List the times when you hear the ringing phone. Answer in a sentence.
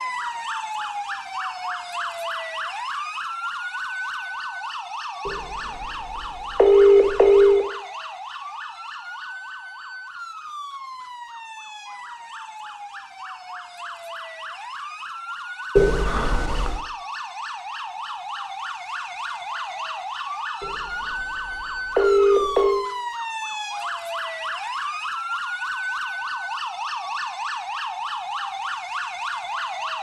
The ringing phone can be heard from 5.2 to 7.7 s, from 15.8 to 16.8 s and from 20.6 to 22.9 s.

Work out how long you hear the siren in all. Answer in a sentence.
The siren can be heard for 30 seconds in total.